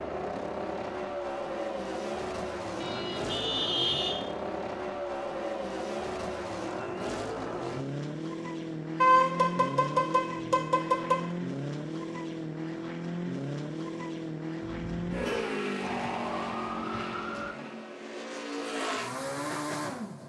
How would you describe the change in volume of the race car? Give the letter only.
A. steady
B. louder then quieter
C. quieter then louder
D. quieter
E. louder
A.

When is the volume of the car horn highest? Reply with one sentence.
The loudest moment of the car horn is at 9 seconds.